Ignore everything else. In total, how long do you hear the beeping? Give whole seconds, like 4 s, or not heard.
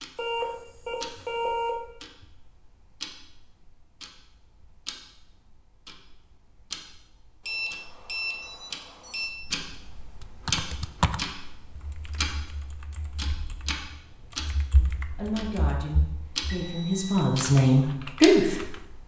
4 s.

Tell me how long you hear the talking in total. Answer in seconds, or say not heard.
4 s.